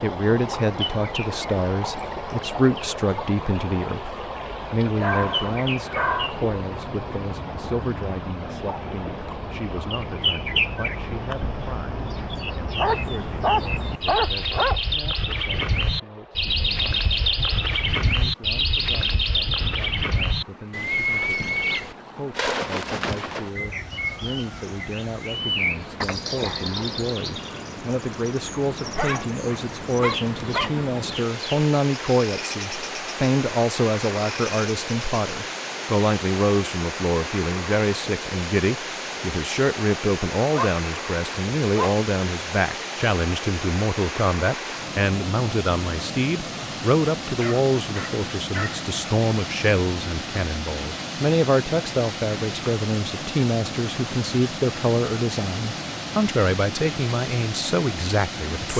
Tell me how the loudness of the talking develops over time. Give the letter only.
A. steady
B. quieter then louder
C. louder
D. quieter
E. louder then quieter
B.